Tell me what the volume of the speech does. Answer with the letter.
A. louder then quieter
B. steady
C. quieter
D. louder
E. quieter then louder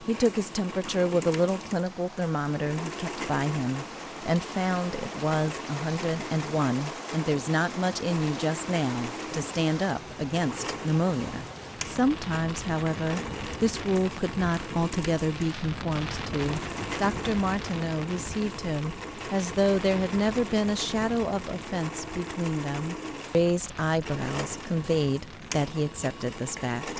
B.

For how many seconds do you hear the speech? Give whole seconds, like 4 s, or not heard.
27 s.